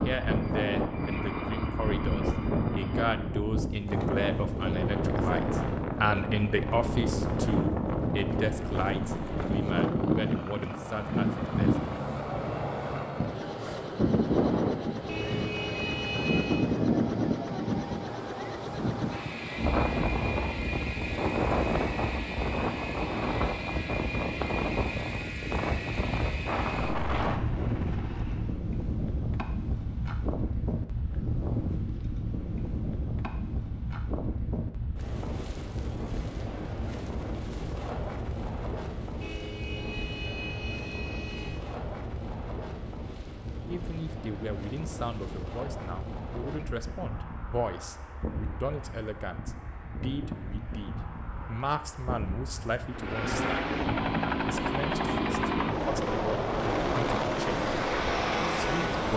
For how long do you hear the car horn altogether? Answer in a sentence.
You can hear the car horn for 4 seconds altogether.